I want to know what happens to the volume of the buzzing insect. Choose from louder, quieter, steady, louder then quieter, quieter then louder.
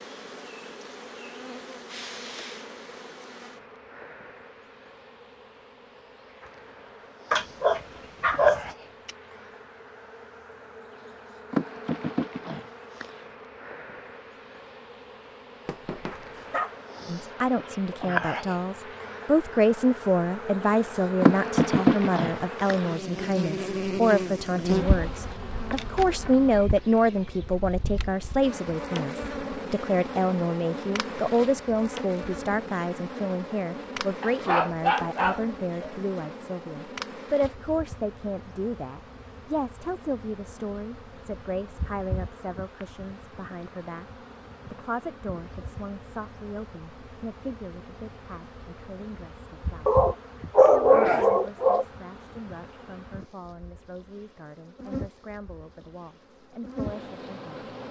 louder then quieter.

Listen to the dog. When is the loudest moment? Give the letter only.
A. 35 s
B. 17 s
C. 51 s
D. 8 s
C.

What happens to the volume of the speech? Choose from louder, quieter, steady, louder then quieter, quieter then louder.
quieter.